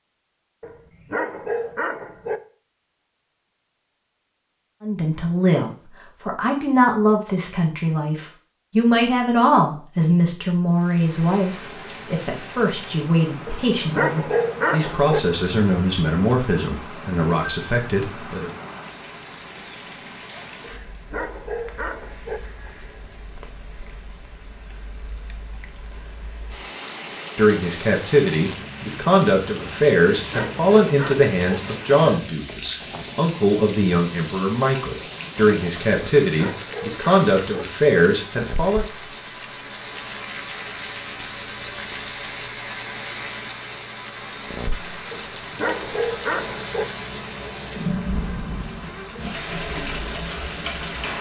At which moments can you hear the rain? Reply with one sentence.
The rain can be heard from 10.7 to 51.1 s.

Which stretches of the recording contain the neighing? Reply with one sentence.
You can't hear the neighing here.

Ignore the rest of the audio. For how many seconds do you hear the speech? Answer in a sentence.
You can hear the speech for 25 seconds altogether.